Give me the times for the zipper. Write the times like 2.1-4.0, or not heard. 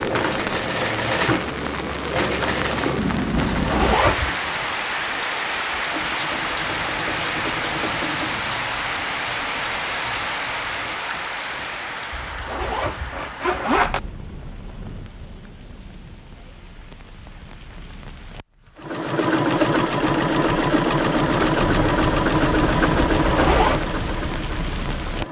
3.5-4.3, 12.1-14.0, 23.2-23.8.